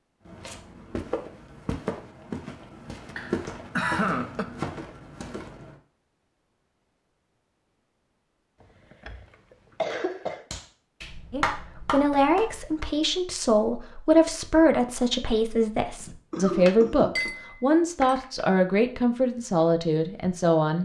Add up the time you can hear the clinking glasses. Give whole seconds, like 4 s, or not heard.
2 s.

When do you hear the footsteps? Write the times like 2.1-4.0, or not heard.
0.2-5.8.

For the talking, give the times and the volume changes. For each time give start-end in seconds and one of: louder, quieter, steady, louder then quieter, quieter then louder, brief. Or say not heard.
11.3-20.7 steady.